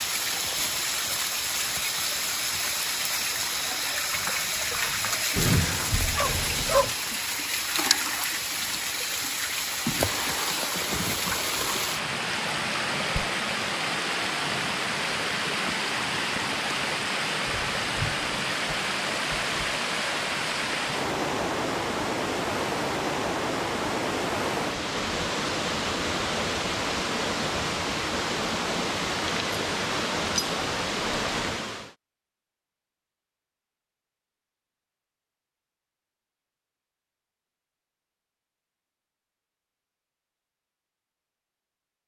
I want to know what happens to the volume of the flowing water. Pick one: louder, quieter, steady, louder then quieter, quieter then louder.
steady.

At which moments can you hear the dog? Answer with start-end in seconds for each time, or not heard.
5.3-7.0.